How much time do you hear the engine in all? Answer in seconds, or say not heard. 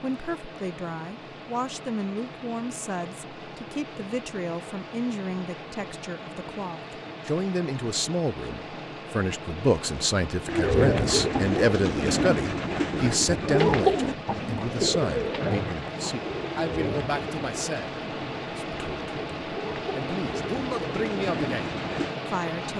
23 s.